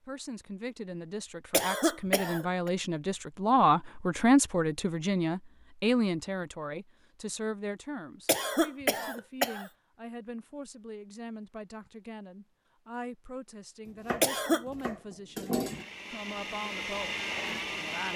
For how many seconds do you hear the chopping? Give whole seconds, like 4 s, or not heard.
2 s.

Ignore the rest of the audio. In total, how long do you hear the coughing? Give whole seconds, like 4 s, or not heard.
3 s.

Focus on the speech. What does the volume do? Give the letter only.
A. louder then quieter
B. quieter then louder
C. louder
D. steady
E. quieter
E.